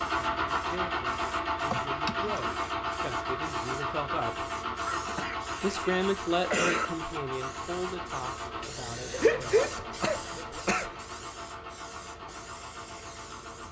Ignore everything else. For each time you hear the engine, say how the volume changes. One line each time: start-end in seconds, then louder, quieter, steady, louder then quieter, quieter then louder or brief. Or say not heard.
0.0-13.6 quieter.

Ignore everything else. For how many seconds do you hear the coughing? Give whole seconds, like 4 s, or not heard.
5 s.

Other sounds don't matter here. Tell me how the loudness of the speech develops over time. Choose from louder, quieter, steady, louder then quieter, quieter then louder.
louder then quieter.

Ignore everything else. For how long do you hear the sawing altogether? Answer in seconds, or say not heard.
not heard.